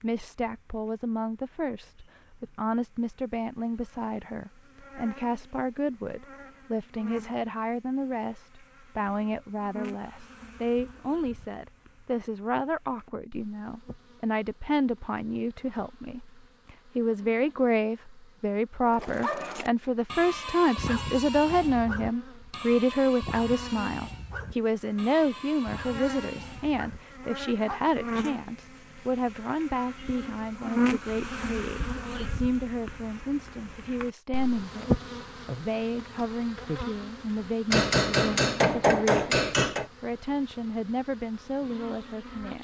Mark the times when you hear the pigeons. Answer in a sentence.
The pigeons can't be heard in this clip.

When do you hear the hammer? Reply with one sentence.
You can hear the hammer from 37.7 to 39.9 s.